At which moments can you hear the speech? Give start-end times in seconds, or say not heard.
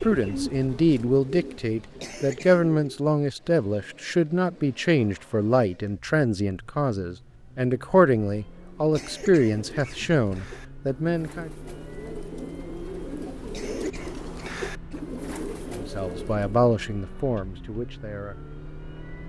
0.0-11.5, 15.7-18.4.